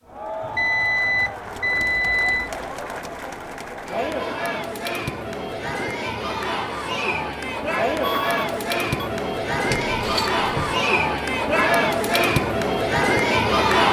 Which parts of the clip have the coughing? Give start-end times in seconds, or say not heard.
not heard.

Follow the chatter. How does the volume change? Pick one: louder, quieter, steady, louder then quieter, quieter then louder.
louder.